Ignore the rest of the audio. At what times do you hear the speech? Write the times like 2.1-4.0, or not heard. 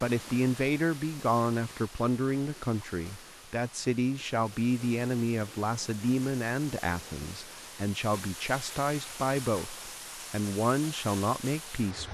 0.0-12.0.